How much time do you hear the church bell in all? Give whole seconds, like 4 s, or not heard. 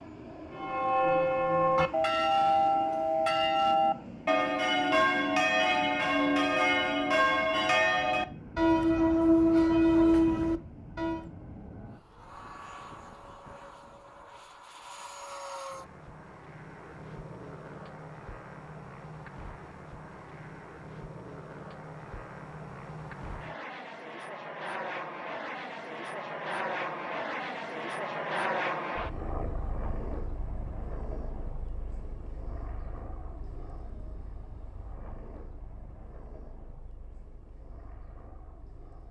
11 s.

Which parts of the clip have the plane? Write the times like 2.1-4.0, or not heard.
0.0-39.0.